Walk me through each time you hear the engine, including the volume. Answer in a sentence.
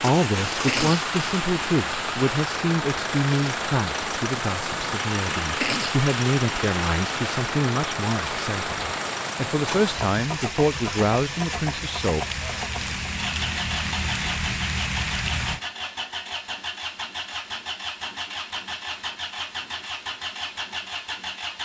You can hear the engine from 0.0 to 21.6 s, at a steady volume.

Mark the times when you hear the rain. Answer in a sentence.
You can hear the rain from 0.0 to 15.6 s.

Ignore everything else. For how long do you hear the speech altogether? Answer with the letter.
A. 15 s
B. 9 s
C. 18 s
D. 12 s
D.